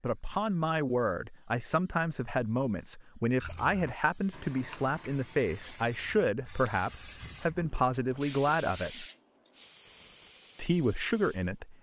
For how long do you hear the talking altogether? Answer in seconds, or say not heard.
10 s.